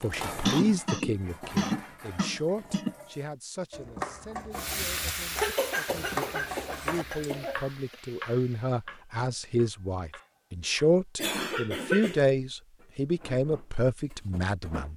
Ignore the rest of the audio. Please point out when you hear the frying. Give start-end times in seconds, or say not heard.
4.5-8.9.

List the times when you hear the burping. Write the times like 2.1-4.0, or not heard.
not heard.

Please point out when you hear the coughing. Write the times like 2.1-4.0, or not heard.
0.5-3.0, 5.3-7.7, 11.2-12.2.